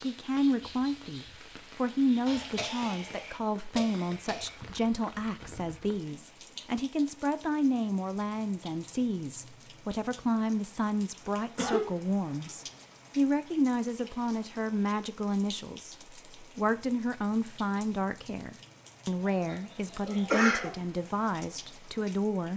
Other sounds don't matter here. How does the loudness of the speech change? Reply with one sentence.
The loudness of the speech stays about the same.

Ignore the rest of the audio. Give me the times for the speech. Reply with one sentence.
The speech can be heard from 0.0 to 22.5 s.